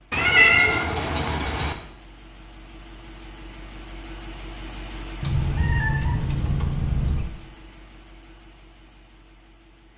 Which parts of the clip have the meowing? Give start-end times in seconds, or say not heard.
0.1-1.8, 5.2-7.2.